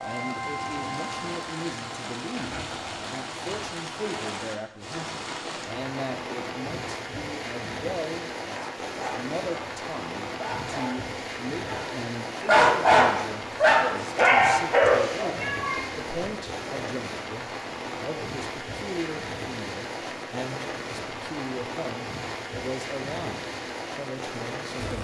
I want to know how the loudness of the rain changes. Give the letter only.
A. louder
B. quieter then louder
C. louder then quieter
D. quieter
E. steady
E.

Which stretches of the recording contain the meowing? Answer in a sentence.
The meowing can be heard from 15.3 to 16.8 s.